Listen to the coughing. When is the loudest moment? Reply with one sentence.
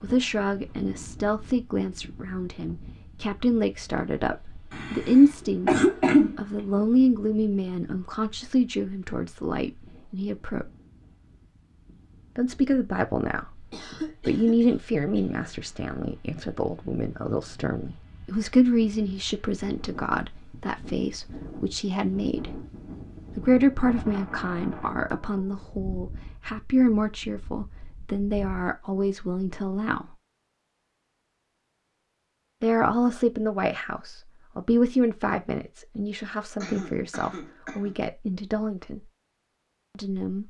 The loudest moment of the coughing is at 6 seconds.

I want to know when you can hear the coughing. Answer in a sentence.
The coughing can be heard from 4.7 to 6.7 s, from 13.7 to 15.2 s and from 36.6 to 38.0 s.